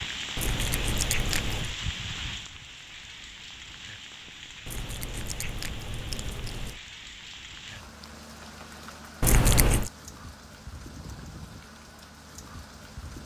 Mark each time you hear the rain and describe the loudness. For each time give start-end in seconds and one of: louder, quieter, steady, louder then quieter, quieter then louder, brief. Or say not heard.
0.0-13.2 quieter.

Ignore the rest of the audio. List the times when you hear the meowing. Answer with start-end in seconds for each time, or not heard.
0.3-1.8, 4.7-6.8, 9.2-9.9.